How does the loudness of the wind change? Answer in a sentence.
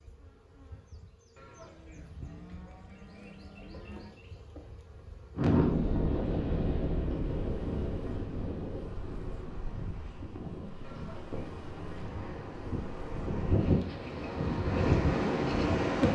The volume of the wind goes down, then up.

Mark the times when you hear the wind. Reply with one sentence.
You can hear the wind from 5.3 to 16.0 s.